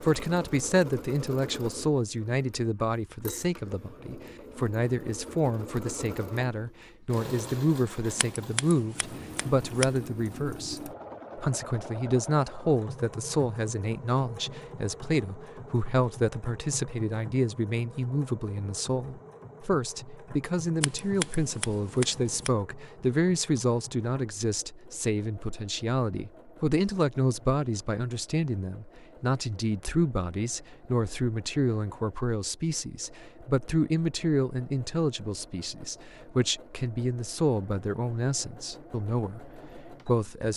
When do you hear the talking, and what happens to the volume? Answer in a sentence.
You can hear the talking from 0.0 to 40.5 s, at a steady volume.